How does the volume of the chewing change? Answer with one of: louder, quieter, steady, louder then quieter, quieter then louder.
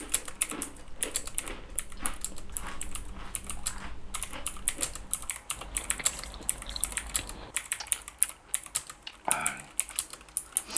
louder.